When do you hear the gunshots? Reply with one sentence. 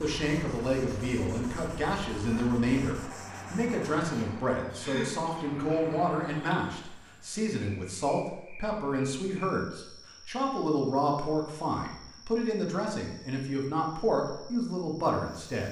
The gunshots can't be heard in this clip.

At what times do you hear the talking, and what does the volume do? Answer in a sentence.
The talking can be heard from 0.0 to 15.6 s, at a steady volume.